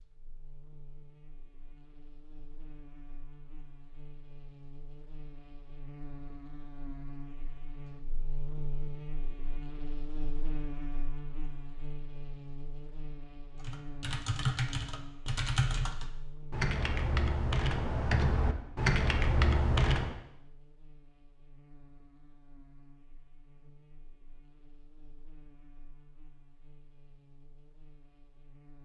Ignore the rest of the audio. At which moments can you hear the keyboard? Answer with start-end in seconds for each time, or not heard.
13.6-20.1.